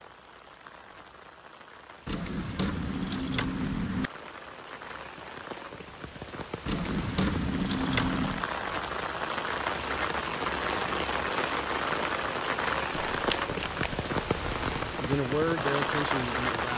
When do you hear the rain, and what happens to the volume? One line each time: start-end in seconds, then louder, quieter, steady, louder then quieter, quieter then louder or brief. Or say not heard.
0.0-16.7 louder.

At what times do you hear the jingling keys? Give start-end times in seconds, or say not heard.
2.0-4.1, 6.7-8.4, 13.1-14.9.